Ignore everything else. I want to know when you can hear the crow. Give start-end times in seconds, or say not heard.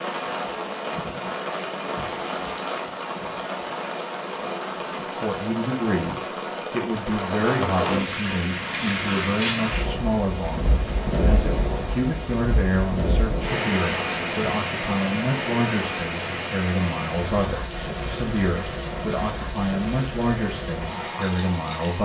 not heard.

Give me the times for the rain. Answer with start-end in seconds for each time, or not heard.
0.0-22.0.